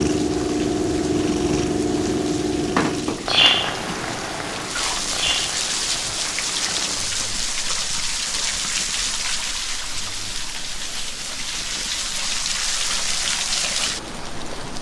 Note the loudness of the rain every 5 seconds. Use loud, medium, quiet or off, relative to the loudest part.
medium, loud, loud.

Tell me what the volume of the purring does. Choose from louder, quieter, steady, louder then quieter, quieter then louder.
quieter.